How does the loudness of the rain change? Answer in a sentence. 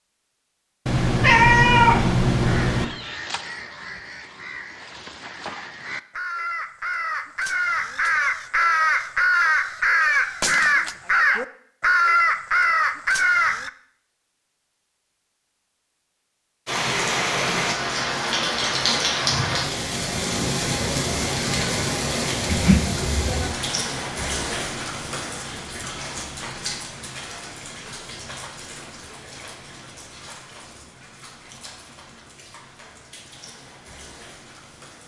The volume of the rain goes down.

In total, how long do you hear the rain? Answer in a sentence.
You can hear the rain for 18 seconds altogether.